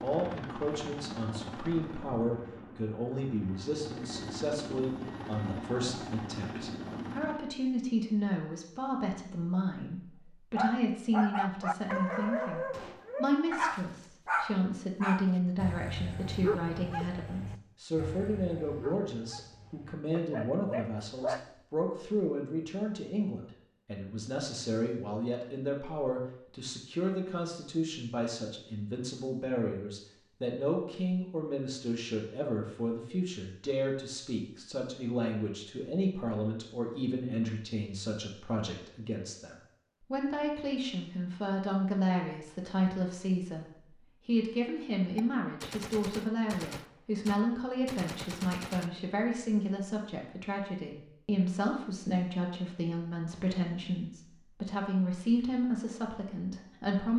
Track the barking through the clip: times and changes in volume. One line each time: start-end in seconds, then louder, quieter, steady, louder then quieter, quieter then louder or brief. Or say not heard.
10.6-21.4 quieter.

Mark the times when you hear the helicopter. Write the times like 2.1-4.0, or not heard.
0.0-7.4.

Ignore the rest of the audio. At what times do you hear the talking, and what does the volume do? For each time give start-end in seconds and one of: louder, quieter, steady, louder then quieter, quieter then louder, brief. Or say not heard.
0.0-57.1 steady.